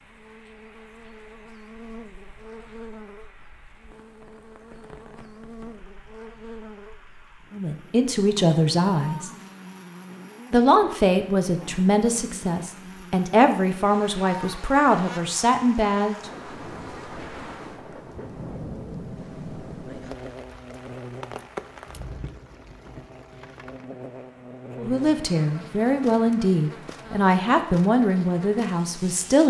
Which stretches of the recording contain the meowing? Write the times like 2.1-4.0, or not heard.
not heard.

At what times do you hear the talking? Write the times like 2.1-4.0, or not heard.
7.5-9.3, 10.5-16.1, 24.8-29.4.